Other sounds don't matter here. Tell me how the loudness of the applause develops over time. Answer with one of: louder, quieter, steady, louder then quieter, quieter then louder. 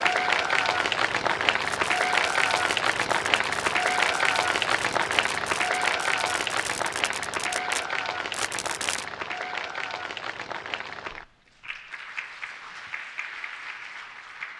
quieter.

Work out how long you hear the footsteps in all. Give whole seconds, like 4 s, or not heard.
not heard.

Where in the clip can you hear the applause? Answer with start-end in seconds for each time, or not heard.
0.0-14.5.